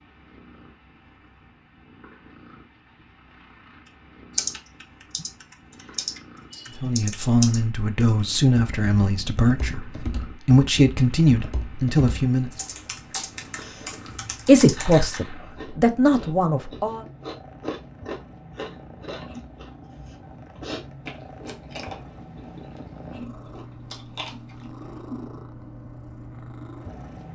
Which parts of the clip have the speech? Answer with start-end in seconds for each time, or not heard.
6.8-12.5, 14.4-17.1.